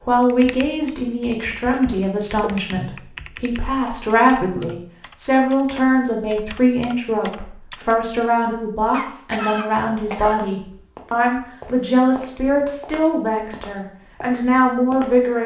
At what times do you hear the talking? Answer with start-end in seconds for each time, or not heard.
0.0-15.4.